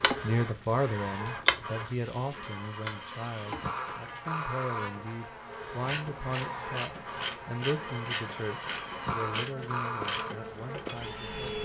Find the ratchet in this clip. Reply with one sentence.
You can hear the ratchet from 0.0 to 4.2 s and from 5.7 to 11.4 s.